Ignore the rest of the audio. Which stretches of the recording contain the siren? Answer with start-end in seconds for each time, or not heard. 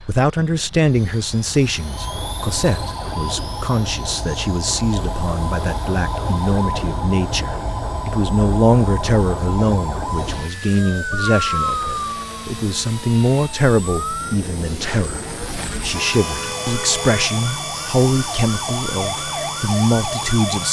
1.8-20.6.